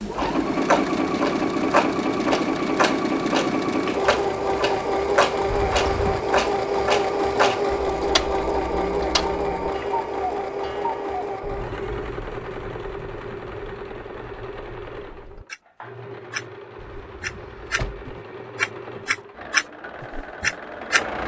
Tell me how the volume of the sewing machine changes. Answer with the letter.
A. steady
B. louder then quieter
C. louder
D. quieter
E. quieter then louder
D.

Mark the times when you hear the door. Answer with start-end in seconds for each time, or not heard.
5.5-6.2, 16.9-18.1.